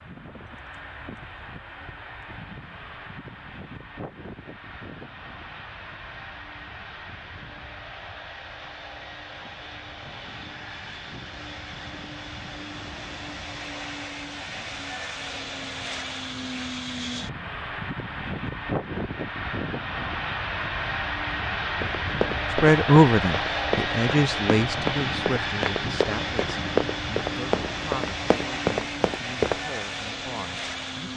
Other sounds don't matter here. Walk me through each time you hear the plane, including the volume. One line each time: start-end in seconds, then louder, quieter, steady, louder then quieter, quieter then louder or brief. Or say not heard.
0.0-31.1 louder.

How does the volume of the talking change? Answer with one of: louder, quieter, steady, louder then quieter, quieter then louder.
quieter.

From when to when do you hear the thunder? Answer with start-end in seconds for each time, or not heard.
not heard.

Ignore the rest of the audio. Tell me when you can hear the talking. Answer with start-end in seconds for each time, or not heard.
22.5-31.1.